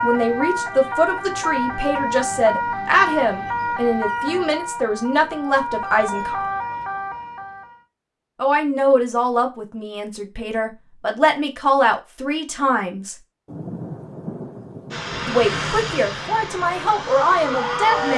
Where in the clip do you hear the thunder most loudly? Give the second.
14 s.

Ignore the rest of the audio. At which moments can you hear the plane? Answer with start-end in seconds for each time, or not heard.
14.9-18.1.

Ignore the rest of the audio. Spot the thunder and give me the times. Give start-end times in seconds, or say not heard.
13.4-15.3.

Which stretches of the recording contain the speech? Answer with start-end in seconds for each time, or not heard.
0.0-6.4, 8.3-13.2, 15.2-18.1.